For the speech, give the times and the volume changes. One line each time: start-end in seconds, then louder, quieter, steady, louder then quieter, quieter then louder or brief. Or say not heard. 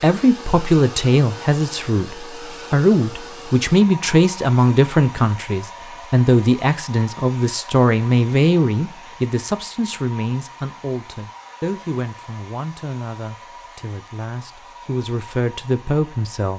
0.0-16.5 quieter.